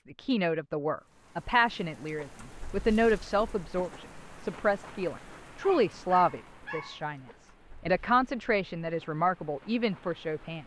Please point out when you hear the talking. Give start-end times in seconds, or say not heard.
0.1-10.6.